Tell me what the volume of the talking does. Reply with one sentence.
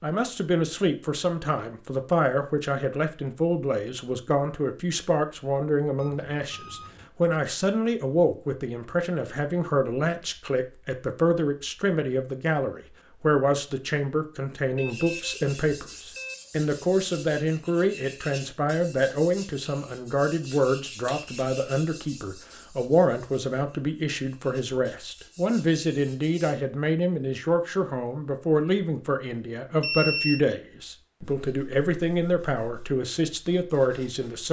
The volume of the talking stays about the same.